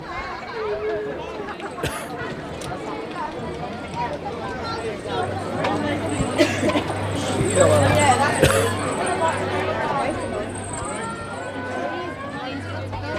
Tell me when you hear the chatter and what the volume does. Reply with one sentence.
The chatter can be heard from 0.0 to 13.1 s, getting louder then quieter.